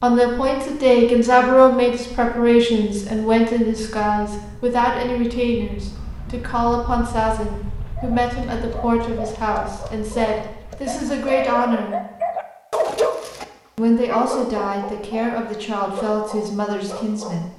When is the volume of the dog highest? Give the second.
13 s.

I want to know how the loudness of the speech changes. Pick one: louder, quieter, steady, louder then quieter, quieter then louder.
quieter.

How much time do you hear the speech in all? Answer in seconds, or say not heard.
16 s.